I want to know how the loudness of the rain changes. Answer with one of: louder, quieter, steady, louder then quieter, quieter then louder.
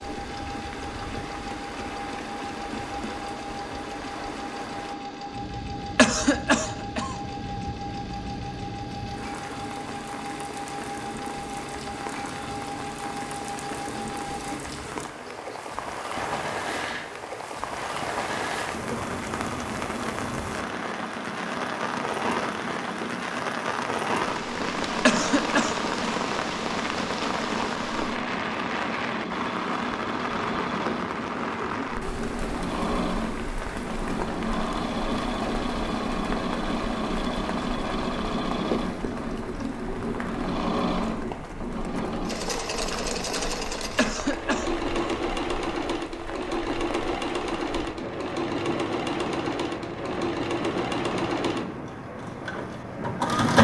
louder then quieter.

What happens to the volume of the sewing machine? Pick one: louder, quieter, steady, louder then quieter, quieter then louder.
louder.